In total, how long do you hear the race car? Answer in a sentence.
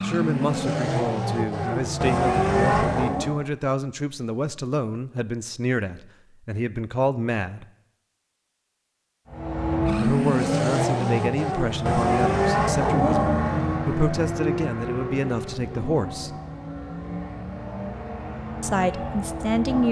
The race car can be heard for 14 seconds in total.